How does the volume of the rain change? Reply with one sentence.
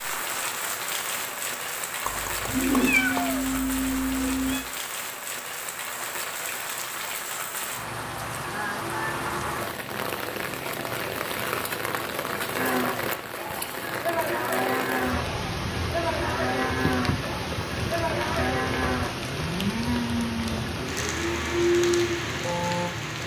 The loudness of the rain stays about the same.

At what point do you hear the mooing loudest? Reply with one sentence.
The volume of the mooing peaks at 22 seconds.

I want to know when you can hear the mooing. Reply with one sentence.
You can hear the mooing from 12.6 to 22.9 s.